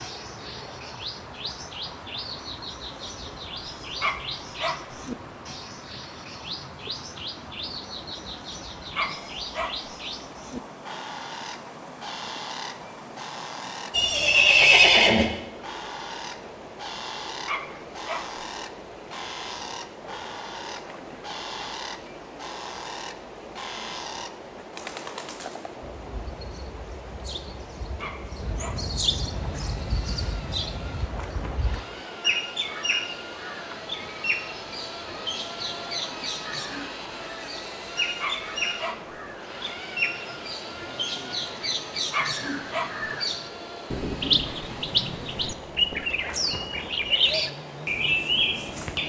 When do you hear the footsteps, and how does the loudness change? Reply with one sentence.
You can't hear the footsteps here.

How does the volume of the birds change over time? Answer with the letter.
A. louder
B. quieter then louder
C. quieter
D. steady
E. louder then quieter
A.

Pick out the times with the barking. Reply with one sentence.
The barking can be heard from 4.0 to 4.8 s, from 8.9 to 9.9 s, from 17.4 to 18.2 s, from 27.9 to 28.9 s, from 38.2 to 39.1 s and from 42.1 to 43.1 s.